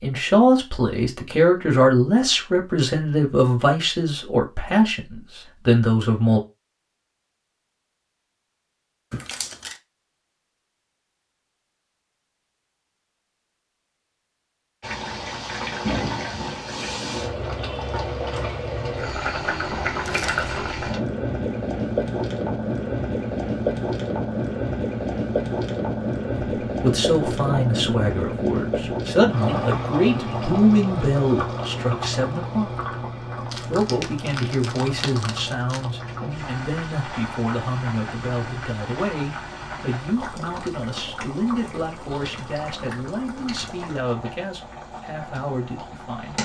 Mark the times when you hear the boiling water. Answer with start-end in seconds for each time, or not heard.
14.8-46.4.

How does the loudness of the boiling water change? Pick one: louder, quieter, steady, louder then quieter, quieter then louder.
quieter.